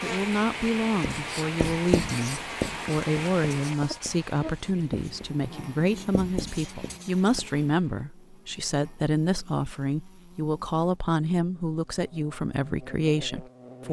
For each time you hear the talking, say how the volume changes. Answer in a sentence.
The talking can be heard from 0.0 to 13.8 s, at a steady volume.